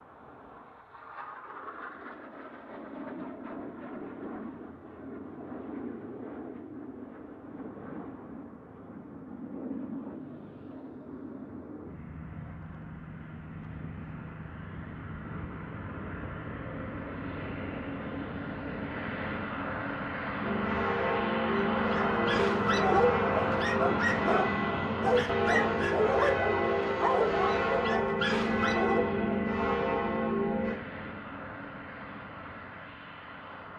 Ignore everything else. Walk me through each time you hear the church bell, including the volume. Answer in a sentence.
The church bell can be heard from 20.4 to 30.8 s, at a steady volume.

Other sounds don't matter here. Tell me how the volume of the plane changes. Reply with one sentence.
The loudness of the plane goes up, then down.